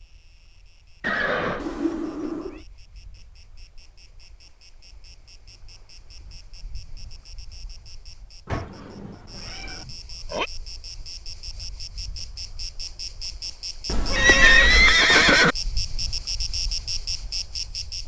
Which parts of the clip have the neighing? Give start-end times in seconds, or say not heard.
1.0-1.6, 9.4-10.5, 14.2-15.6.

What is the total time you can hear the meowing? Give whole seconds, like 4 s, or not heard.
4 s.